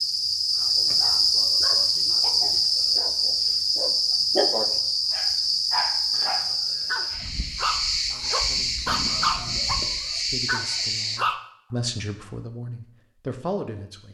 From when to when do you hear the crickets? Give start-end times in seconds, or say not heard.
0.0-11.2.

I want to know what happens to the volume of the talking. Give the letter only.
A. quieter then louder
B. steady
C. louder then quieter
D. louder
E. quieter
D.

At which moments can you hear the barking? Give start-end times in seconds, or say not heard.
1.0-11.4.